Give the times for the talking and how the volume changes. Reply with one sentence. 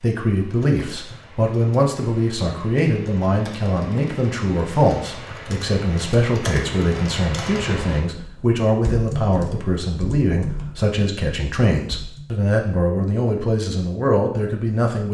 You can hear the talking from 0.0 to 15.0 s, at a steady volume.